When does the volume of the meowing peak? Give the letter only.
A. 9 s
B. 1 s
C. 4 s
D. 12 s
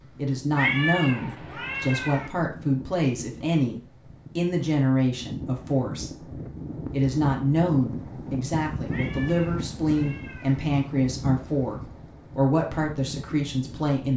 B.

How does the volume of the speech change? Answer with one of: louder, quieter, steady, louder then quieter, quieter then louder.
steady.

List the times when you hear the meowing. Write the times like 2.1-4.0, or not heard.
0.6-2.3, 8.8-10.7.